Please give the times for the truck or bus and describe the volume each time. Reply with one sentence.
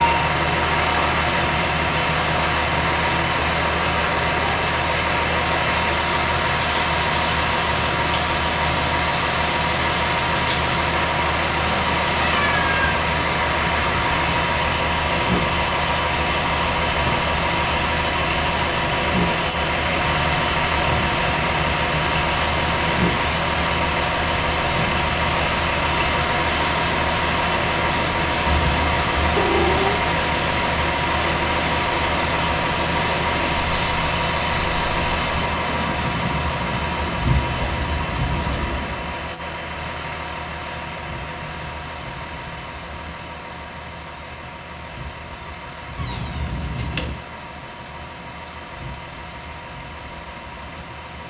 The truck or bus can be heard from 0.0 to 51.2 s, getting quieter.